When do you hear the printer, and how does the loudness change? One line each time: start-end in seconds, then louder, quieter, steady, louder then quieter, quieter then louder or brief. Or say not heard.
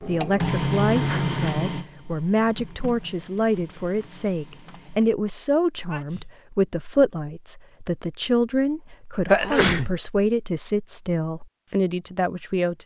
0.0-5.2 quieter.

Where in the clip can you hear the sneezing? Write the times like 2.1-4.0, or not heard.
0.9-1.4, 5.8-6.2, 9.2-9.9.